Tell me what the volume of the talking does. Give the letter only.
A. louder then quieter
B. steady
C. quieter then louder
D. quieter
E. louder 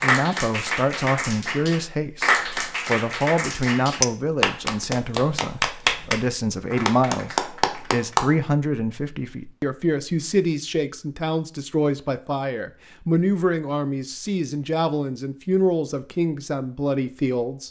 B.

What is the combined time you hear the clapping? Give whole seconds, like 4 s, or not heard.
8 s.